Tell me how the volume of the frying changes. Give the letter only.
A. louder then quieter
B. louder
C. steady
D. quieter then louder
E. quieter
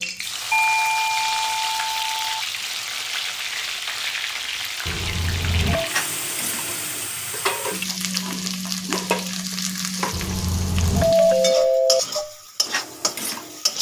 C.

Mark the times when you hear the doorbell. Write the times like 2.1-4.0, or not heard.
0.5-2.4, 4.8-5.9, 10.1-12.0.